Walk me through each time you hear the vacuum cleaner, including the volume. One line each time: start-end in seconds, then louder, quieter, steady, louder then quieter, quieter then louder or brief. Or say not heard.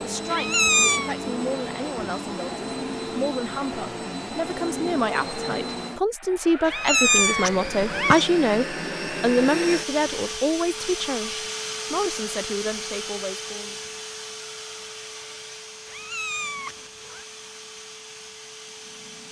0.0-19.2 quieter.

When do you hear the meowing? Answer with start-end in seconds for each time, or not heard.
0.3-1.1, 6.7-8.2, 15.8-17.2.